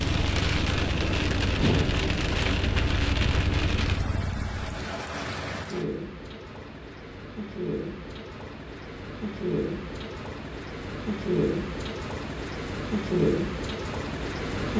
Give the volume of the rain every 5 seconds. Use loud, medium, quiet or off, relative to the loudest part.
loud, medium, loud.